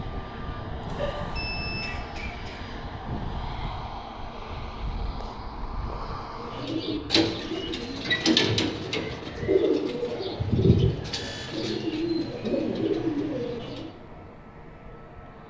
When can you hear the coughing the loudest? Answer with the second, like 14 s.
1 s.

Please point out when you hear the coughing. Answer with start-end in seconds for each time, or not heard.
0.9-2.6.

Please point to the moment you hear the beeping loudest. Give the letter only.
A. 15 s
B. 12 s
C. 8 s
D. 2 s
D.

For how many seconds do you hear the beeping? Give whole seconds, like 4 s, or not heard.
2 s.